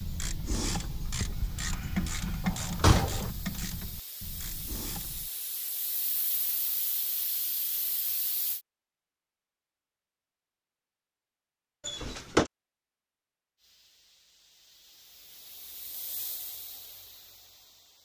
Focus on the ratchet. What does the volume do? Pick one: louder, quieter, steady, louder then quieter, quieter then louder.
quieter.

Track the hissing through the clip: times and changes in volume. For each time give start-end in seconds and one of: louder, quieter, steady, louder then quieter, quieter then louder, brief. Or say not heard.
0.0-8.6 louder
13.6-18.0 louder then quieter.